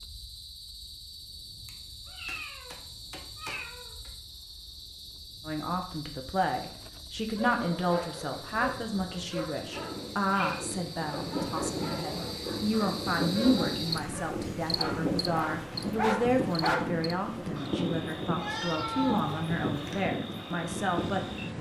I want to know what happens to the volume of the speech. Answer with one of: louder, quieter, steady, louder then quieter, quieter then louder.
steady.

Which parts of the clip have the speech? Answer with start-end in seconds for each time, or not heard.
5.5-21.5.